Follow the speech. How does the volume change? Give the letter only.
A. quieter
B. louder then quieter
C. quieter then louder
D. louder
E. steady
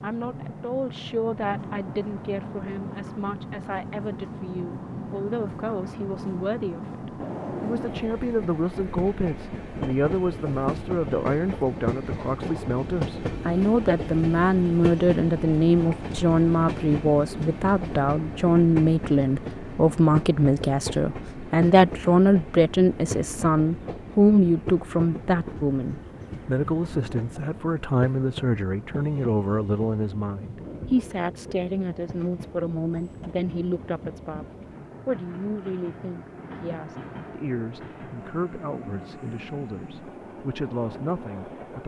B.